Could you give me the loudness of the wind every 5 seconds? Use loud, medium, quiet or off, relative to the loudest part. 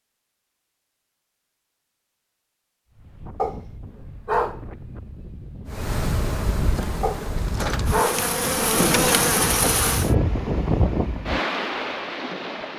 quiet, medium, loud.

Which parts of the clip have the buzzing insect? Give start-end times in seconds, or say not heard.
5.7-10.1.